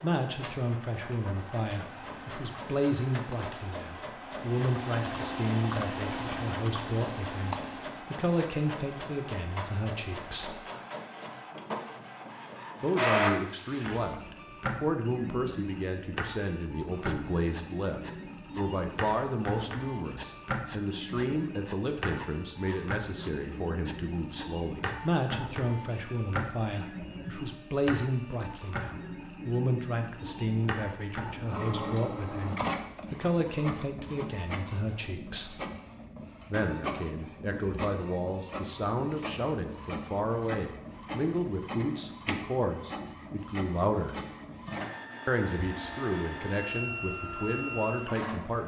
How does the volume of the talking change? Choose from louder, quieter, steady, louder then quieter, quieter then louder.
steady.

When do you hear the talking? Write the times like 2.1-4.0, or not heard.
0.0-10.6, 12.8-35.5, 36.5-44.1, 45.2-48.6.